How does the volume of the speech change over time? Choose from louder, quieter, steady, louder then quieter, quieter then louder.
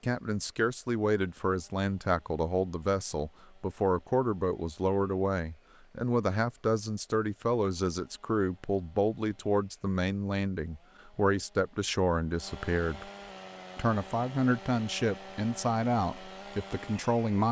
steady.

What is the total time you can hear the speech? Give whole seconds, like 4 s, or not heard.
17 s.